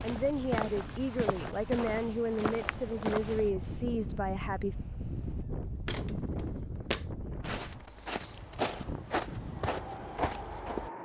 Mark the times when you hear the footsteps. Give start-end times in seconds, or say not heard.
0.0-3.5, 5.8-10.9.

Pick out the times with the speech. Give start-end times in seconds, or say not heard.
0.0-4.8.